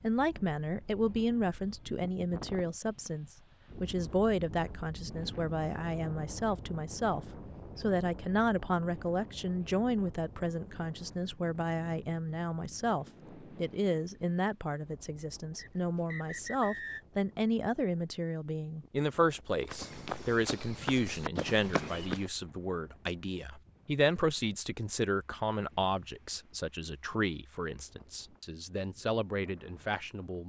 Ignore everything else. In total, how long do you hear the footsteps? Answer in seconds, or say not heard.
3 s.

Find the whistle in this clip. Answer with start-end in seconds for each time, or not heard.
15.6-17.0.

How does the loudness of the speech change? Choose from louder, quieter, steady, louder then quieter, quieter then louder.
steady.